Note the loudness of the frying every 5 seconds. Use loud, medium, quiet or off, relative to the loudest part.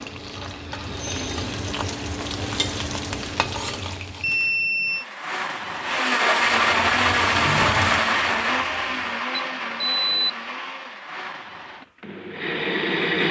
loud, loud, off.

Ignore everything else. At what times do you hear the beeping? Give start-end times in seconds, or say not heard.
4.2-5.0, 9.3-10.3.